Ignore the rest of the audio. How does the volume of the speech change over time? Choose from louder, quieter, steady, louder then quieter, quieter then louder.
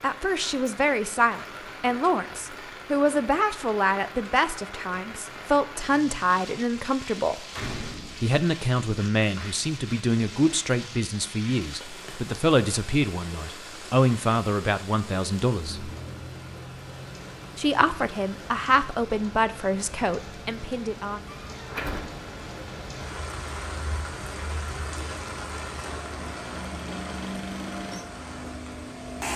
steady.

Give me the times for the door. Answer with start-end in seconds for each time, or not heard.
7.5-8.3, 21.5-22.2.